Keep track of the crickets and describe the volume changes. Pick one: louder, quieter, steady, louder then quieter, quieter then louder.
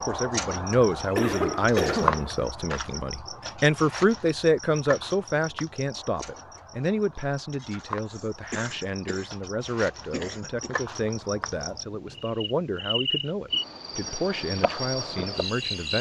quieter then louder.